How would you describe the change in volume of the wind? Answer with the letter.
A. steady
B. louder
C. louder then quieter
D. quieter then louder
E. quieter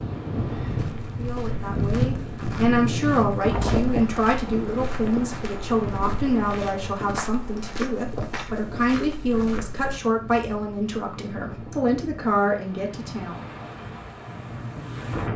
E.